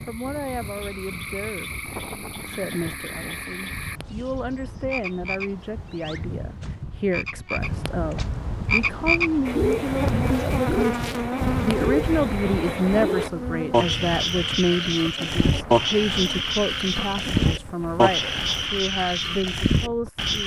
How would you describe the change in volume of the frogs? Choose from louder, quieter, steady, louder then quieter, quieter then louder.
louder.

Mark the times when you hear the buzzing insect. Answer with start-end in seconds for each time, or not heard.
9.8-18.7.